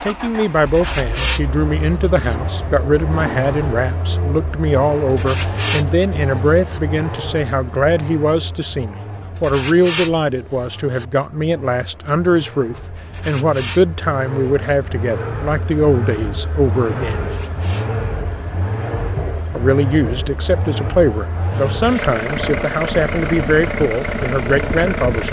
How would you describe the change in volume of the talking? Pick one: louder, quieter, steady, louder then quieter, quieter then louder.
steady.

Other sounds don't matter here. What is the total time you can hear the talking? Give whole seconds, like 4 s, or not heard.
23 s.